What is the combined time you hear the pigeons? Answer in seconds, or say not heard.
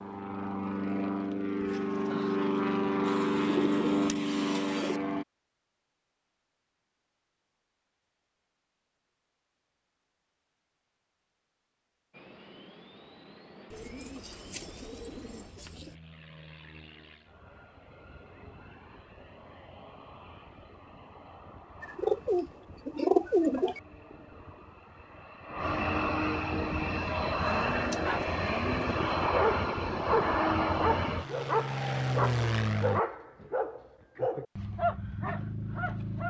8 s.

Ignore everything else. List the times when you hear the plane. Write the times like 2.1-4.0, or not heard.
0.0-5.2, 12.1-33.0.